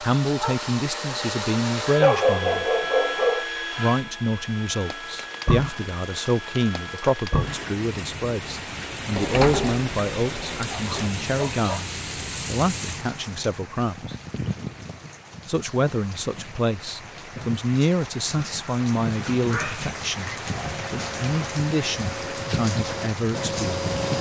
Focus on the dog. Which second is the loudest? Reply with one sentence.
The volume of the dog peaks at 2 seconds.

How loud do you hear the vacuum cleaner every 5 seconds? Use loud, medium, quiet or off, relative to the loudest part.
loud, medium, off, off, loud.